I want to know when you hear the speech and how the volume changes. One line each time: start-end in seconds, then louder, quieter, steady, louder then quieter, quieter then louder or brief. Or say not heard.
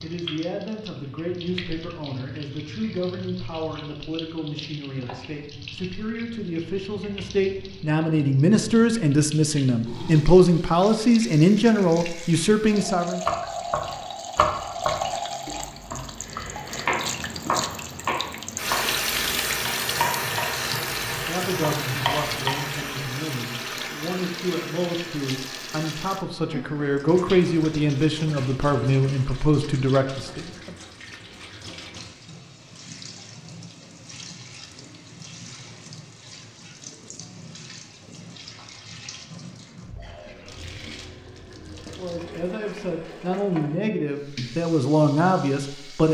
0.0-13.2 louder
21.2-30.8 louder
42.0-46.0 louder.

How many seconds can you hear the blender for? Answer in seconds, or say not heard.
not heard.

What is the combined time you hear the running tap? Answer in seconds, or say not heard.
46 s.